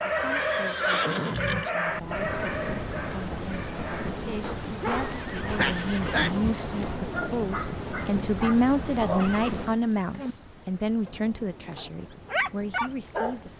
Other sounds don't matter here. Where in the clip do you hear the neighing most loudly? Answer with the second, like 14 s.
1 s.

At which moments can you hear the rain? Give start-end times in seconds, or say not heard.
1.8-13.5.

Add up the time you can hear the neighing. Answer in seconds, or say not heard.
5 s.